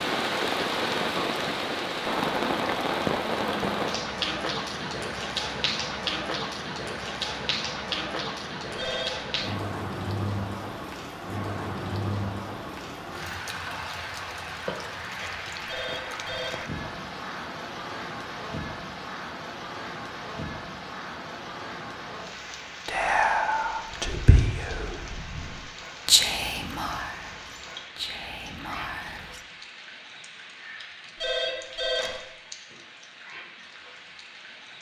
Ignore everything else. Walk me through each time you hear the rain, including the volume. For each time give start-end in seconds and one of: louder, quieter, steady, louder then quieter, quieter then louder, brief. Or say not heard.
0.0-34.7 quieter.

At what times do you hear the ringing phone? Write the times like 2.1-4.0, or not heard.
8.8-9.3, 15.7-16.6, 31.1-32.2.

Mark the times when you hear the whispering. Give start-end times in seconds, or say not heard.
22.9-29.1.